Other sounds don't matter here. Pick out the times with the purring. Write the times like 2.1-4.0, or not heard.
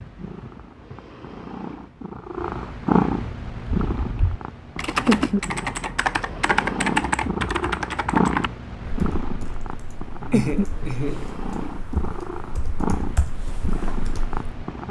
0.0-14.8.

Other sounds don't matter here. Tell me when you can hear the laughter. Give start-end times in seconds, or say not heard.
10.3-11.2.